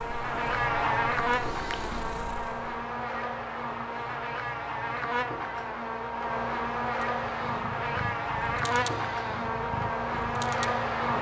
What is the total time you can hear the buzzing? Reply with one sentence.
The buzzing can be heard for 11 seconds in total.